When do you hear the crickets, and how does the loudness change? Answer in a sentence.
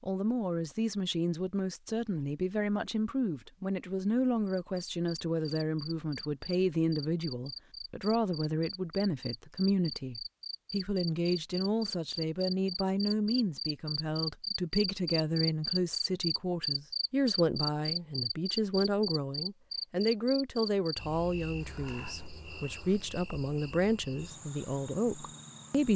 The crickets can be heard from 4.5 to 25.9 s, getting louder then quieter.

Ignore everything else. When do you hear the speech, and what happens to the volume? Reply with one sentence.
The speech can be heard from 0.0 to 25.9 s, at a steady volume.